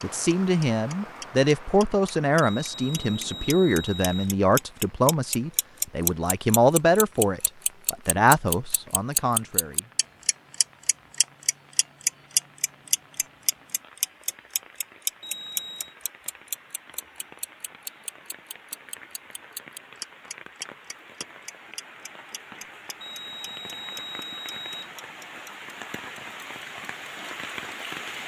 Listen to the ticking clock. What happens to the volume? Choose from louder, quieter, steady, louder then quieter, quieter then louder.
louder then quieter.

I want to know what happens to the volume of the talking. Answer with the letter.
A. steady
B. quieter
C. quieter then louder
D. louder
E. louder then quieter
A.